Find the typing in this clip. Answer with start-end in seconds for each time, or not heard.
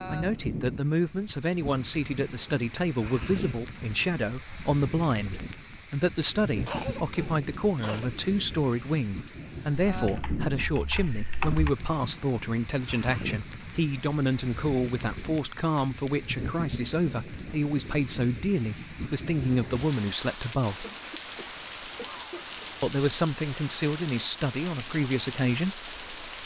9.9-11.7.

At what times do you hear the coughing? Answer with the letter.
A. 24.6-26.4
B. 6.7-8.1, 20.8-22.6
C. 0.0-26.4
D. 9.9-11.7
B.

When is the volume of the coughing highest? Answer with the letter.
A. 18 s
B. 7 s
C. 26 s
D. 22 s
B.